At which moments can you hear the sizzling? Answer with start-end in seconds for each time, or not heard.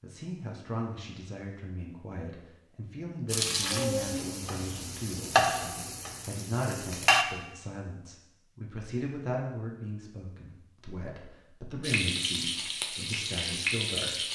3.2-7.2, 11.8-14.3.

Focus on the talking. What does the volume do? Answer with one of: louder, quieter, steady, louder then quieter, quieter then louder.
steady.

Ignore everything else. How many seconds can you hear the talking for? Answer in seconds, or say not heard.
14 s.